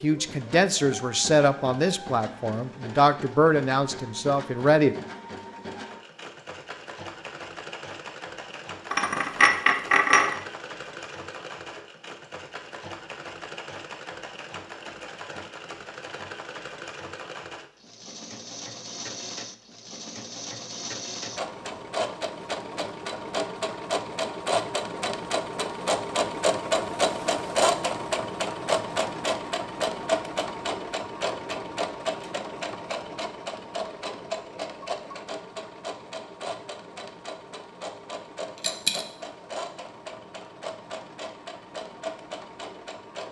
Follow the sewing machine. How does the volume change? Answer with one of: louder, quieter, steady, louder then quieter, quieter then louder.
louder then quieter.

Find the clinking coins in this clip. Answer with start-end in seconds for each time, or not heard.
8.9-10.3, 38.6-39.0.